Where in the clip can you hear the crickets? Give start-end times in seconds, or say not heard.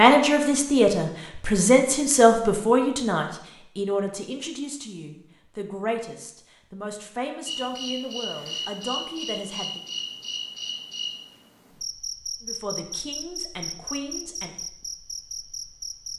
7.5-16.1.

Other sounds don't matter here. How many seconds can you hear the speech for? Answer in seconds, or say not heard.
12 s.